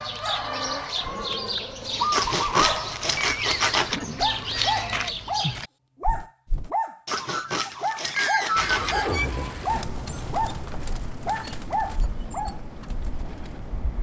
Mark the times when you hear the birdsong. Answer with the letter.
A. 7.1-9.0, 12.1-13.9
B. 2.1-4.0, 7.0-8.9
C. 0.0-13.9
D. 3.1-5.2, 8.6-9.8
C.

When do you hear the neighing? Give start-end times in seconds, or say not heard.
3.1-5.2, 8.6-9.8.